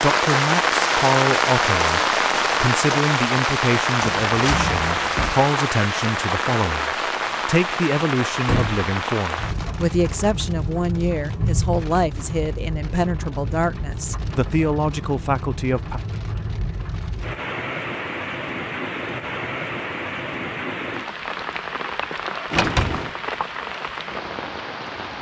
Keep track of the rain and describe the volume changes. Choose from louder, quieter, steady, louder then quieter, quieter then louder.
quieter.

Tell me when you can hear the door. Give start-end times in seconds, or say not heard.
4.0-5.5, 8.4-8.9, 22.5-23.1.